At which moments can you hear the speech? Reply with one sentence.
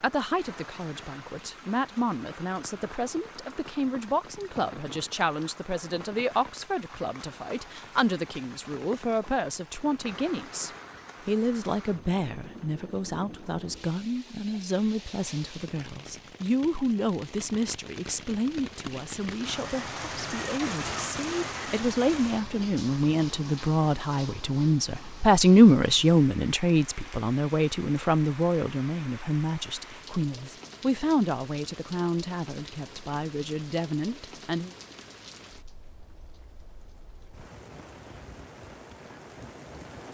You can hear the speech from 0.0 to 34.7 s.